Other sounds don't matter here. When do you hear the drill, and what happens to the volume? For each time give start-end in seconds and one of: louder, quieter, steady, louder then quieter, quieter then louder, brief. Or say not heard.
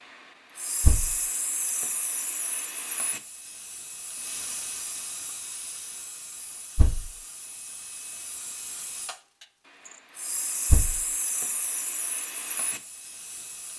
not heard.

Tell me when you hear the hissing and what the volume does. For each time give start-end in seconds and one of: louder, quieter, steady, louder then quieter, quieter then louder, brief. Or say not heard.
0.1-13.7 quieter then louder.